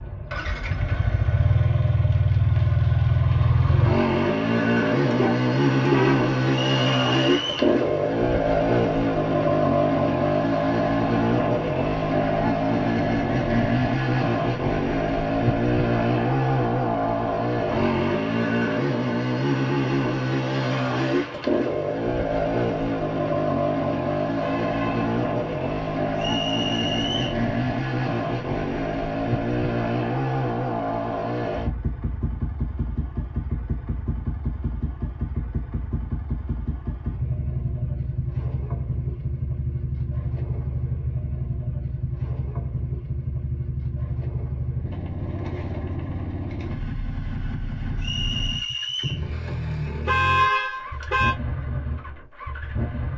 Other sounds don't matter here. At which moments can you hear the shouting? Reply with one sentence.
The shouting can't be heard in this clip.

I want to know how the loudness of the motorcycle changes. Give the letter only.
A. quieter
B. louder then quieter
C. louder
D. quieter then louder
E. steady
A.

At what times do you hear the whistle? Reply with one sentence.
The whistle can be heard from 6.5 to 7.7 s, from 26.1 to 27.4 s and from 48.0 to 49.2 s.